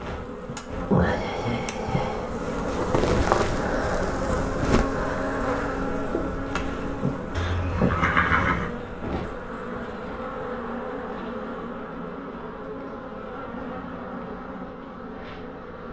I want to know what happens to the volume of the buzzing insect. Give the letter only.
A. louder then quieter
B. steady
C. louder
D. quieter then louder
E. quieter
E.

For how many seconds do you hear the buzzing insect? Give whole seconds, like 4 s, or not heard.
16 s.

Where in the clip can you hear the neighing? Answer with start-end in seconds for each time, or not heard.
7.3-8.8.